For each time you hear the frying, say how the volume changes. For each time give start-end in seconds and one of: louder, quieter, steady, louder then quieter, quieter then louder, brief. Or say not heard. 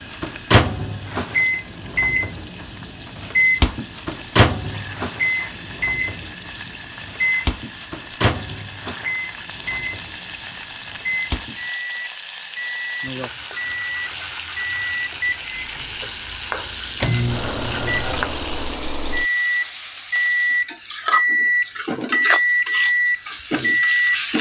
0.0-24.3 louder.